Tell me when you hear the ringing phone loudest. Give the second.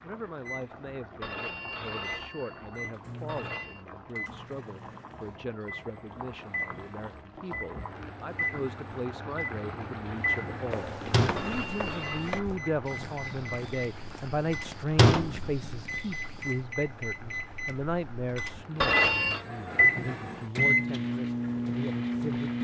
19 s.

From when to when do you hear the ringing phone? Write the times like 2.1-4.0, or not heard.
1.2-3.9, 11.3-12.3, 18.8-19.4.